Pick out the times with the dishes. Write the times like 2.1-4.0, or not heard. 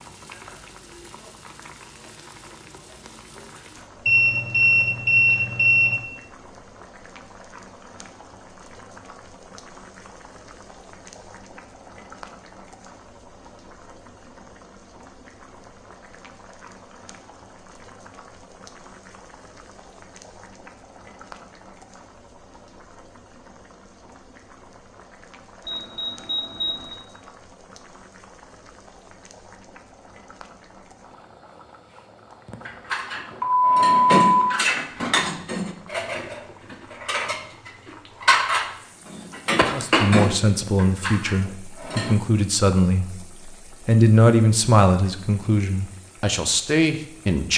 32.5-42.2.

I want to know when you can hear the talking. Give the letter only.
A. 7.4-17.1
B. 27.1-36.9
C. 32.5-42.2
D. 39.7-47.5
D.